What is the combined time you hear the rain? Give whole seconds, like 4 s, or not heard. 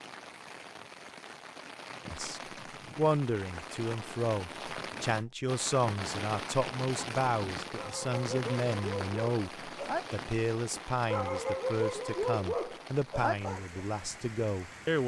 15 s.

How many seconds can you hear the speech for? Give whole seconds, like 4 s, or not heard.
13 s.